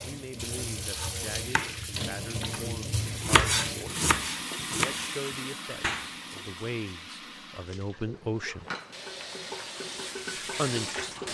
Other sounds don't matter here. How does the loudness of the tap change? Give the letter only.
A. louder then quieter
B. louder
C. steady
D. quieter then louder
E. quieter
D.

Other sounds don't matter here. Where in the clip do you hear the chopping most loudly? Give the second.
3 s.